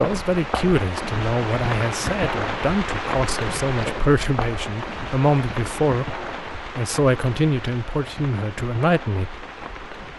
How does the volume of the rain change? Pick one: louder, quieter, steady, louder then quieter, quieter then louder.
quieter.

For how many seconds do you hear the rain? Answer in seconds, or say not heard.
10 s.